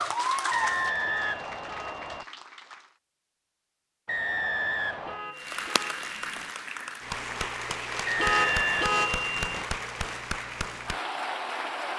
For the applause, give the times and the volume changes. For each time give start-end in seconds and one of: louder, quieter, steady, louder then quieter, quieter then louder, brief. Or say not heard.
0.0-3.0 brief
5.3-11.9 steady.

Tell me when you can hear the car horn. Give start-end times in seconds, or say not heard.
1.1-2.1, 5.0-6.5, 8.2-9.7.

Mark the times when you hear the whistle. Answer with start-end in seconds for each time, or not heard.
0.5-2.2, 4.0-5.2, 8.1-8.9.